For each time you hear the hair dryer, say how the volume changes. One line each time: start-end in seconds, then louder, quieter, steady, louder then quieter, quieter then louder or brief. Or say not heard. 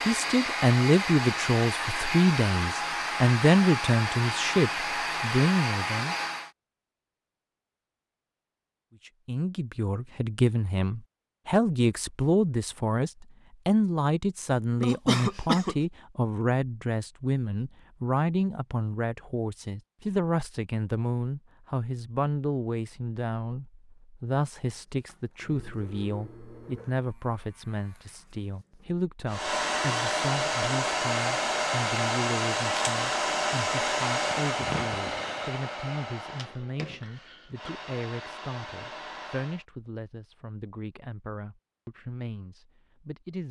0.0-6.5 steady
29.2-39.6 quieter.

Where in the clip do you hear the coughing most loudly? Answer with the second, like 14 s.
15 s.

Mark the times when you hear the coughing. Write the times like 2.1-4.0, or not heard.
14.8-15.8, 34.5-35.5.